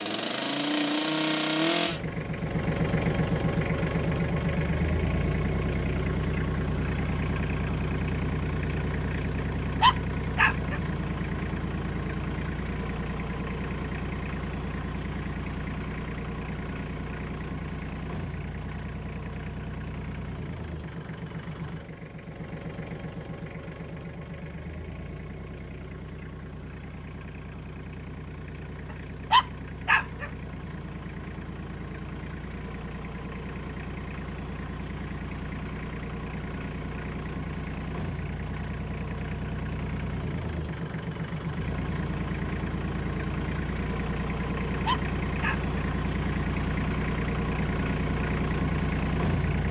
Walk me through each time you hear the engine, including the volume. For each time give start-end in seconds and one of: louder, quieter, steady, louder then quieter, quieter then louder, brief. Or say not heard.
0.0-49.6 quieter then louder.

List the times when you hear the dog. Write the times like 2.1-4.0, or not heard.
9.8-10.8, 29.3-30.3, 44.9-45.6.